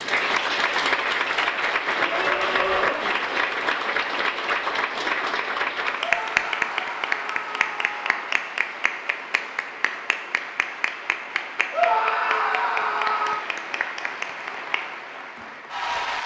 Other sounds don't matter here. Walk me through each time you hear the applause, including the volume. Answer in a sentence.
The applause can be heard from 0.0 to 16.2 s, getting quieter.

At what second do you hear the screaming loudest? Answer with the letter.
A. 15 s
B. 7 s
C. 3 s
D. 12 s
D.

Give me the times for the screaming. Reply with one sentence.
The screaming can be heard from 2.0 to 3.0 s, from 6.0 to 8.3 s and from 11.7 to 13.4 s.